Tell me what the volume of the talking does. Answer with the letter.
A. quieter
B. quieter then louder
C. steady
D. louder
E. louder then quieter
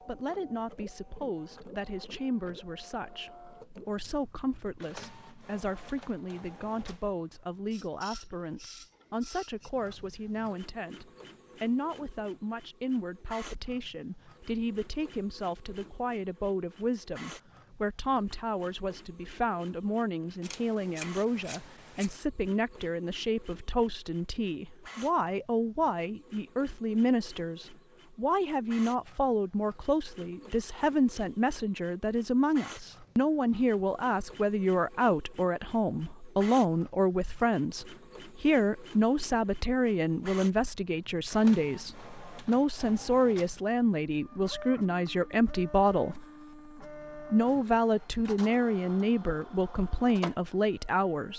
D.